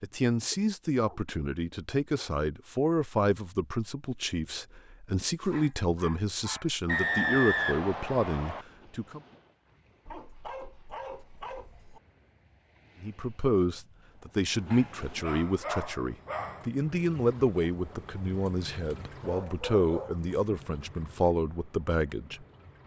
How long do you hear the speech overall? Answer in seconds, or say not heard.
19 s.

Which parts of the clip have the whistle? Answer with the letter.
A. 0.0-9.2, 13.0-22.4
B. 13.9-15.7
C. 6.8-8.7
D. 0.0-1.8
C.